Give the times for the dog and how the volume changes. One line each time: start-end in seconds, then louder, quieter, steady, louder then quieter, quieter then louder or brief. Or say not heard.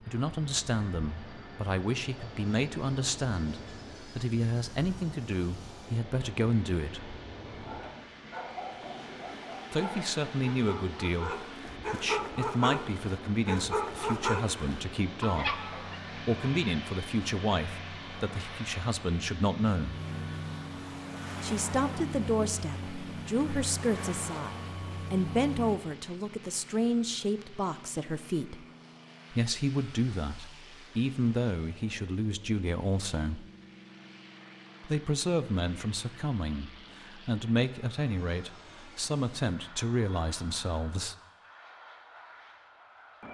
7.6-16.0 louder.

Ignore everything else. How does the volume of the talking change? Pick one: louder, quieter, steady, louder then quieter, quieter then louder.
steady.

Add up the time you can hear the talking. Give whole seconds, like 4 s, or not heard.
35 s.